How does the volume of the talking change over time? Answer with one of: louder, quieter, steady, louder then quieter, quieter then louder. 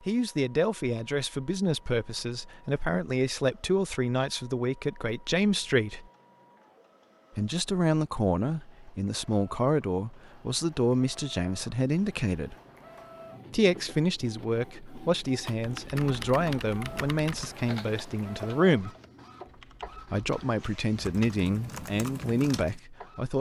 steady.